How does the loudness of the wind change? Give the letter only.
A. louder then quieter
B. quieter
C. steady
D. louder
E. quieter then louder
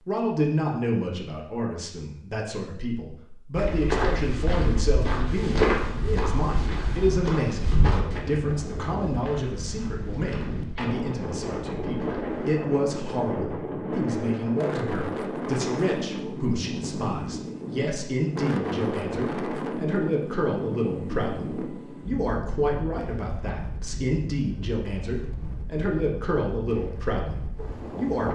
B.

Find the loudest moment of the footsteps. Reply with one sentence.
The volume of the footsteps peaks at 6 seconds.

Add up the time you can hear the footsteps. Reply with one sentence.
You can hear the footsteps for 9 seconds altogether.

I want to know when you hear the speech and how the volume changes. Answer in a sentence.
The speech can be heard from 0.1 to 28.3 s, at a steady volume.